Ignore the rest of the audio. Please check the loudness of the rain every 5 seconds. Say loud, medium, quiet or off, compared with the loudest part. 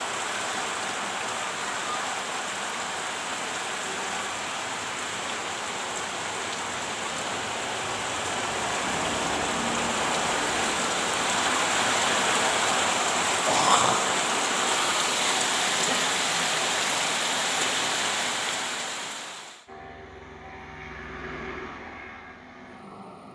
medium, medium, loud, loud, off.